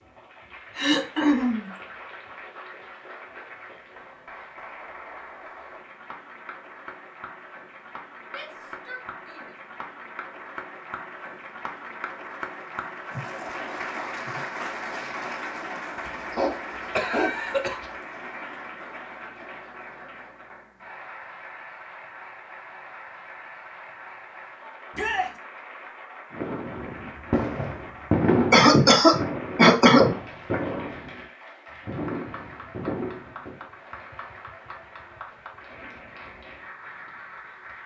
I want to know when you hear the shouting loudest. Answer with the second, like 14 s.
25 s.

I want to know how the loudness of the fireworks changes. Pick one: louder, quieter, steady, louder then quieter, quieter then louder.
louder then quieter.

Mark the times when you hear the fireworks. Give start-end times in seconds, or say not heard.
26.4-33.6.